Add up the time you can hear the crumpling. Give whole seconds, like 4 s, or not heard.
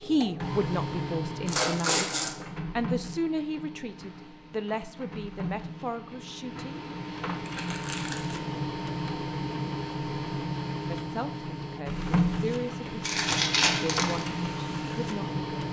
3 s.